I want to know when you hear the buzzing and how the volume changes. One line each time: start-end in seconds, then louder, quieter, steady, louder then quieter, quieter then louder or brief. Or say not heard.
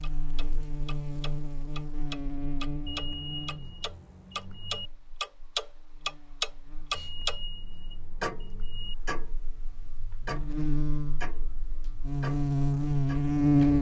0.0-13.7 quieter then louder.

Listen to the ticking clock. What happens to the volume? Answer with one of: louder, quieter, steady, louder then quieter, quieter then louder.
louder then quieter.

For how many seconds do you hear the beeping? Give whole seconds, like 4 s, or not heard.
4 s.